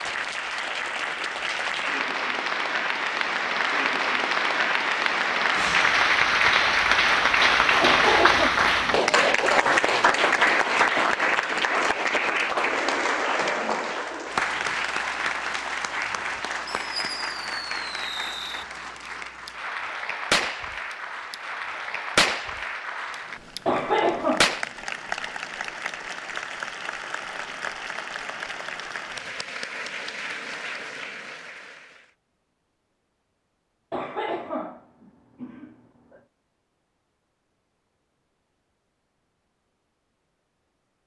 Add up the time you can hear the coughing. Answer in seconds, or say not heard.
4 s.